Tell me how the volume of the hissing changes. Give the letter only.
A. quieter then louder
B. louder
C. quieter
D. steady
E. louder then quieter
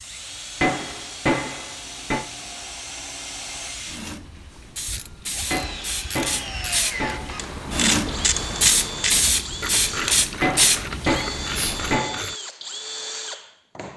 B.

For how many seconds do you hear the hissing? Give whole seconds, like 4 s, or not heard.
12 s.